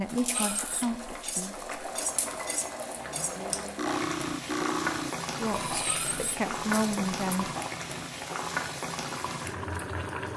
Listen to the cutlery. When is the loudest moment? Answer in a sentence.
The volume of the cutlery peaks at 5 seconds.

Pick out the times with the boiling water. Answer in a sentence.
The boiling water can be heard from 0.0 to 10.3 s.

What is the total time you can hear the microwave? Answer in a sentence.
You can hear the microwave for 2 seconds altogether.